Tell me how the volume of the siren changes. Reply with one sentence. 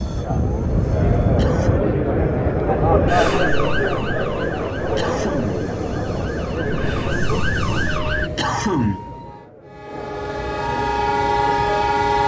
The loudness of the siren goes down, then up.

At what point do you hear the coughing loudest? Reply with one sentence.
The volume of the coughing peaks at 9 seconds.